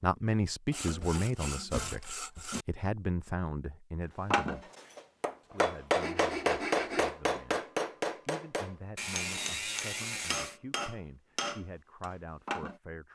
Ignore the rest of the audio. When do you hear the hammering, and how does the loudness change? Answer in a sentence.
You can hear the hammering from 4.3 to 12.8 s, getting quieter.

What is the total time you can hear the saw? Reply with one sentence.
You can hear the saw for 5 seconds altogether.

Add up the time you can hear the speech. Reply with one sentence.
The speech can be heard for 12 seconds in total.